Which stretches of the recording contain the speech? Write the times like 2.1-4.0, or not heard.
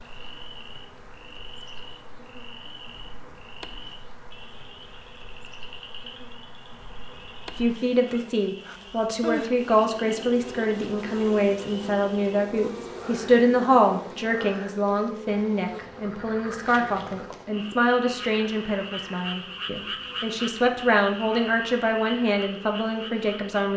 7.5-23.7.